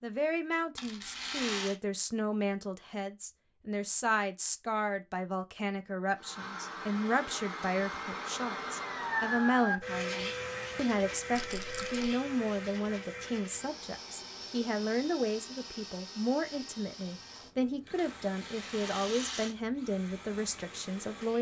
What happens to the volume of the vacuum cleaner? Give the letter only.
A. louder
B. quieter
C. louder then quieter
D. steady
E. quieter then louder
B.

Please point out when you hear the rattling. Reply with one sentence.
You can hear the rattling from 0.8 to 1.8 s, from 11.3 to 12.1 s and from 18.2 to 19.6 s.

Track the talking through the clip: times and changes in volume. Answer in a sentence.
The talking can be heard from 0.0 to 21.3 s, at a steady volume.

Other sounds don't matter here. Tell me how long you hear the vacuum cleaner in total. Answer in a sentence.
The vacuum cleaner can be heard for 15 seconds in total.